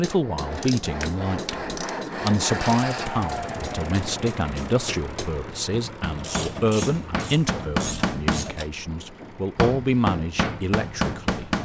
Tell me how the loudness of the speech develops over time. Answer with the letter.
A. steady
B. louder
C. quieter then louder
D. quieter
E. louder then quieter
A.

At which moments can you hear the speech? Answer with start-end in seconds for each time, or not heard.
0.0-11.5.